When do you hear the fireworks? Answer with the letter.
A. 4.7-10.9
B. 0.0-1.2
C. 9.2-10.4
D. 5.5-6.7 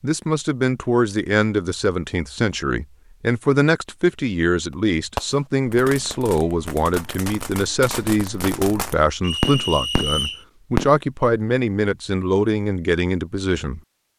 A.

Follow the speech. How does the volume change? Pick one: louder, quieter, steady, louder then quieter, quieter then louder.
steady.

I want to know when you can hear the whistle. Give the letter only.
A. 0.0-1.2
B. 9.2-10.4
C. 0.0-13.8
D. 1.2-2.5
B.